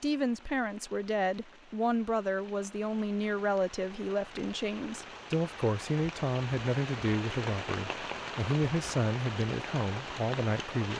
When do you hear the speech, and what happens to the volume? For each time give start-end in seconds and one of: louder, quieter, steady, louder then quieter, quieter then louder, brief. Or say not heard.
0.0-10.9 steady.